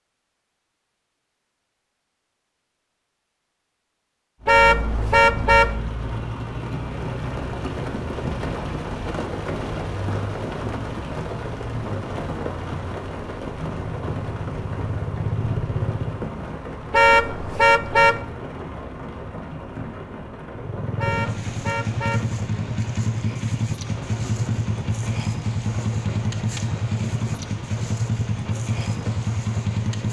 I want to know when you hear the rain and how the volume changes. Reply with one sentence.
The rain can be heard from 4.4 to 30.0 s, getting quieter.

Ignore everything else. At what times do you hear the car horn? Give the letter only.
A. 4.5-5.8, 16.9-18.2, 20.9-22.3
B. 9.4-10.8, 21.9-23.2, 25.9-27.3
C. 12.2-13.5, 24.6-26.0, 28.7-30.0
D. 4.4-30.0
A.